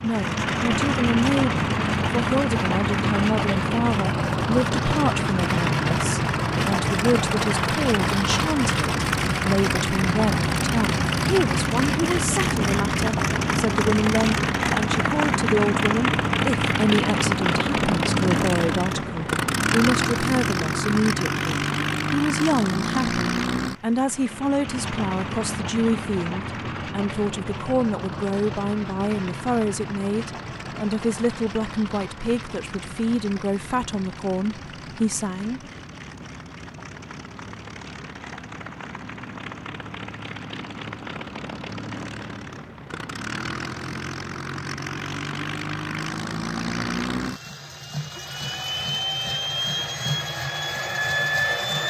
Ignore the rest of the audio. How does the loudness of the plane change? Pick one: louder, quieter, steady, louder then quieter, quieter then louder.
quieter then louder.